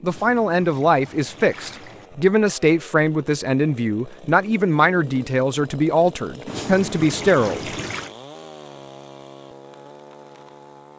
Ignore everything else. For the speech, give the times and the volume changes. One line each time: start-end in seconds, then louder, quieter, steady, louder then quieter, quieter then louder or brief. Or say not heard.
0.0-7.7 steady.